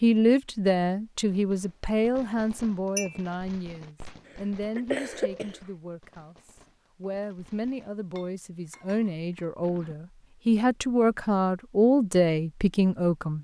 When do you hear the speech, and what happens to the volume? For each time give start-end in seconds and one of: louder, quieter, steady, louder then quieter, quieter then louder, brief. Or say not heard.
0.0-13.3 quieter then louder.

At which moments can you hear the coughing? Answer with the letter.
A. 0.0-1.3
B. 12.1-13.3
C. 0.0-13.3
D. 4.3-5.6
D.